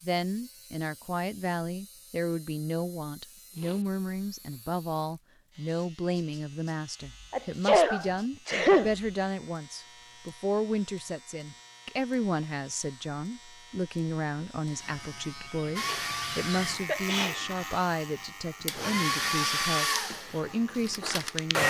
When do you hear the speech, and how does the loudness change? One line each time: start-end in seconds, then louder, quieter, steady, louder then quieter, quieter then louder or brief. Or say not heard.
0.0-21.6 steady.